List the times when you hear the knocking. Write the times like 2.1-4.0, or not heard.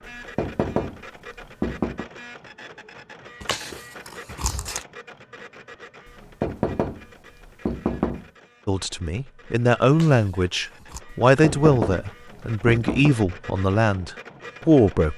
0.1-2.0, 6.0-8.2, 11.1-13.2.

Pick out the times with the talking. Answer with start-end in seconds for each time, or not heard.
8.7-15.1.